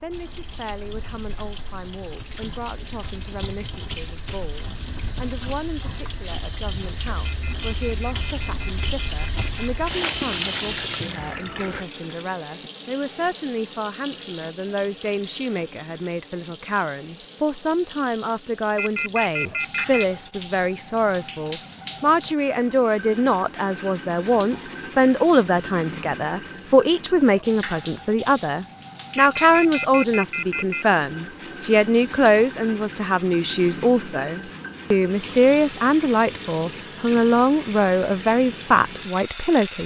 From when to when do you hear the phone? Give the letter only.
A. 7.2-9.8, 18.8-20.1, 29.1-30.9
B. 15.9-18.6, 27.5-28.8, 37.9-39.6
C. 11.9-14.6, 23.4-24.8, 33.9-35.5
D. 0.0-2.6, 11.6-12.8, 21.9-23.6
A.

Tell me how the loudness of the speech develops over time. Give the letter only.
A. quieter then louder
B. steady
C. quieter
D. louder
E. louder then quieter
D.